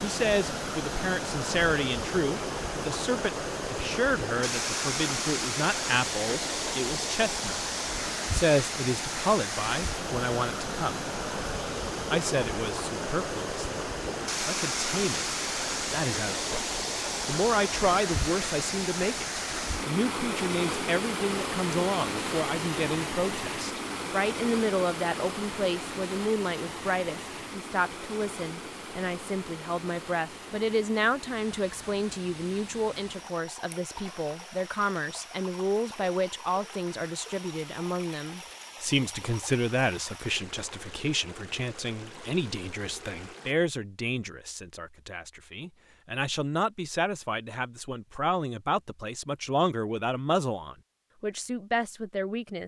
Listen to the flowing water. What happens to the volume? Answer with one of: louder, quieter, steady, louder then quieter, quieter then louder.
quieter.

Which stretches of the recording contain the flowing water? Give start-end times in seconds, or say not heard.
0.0-43.5.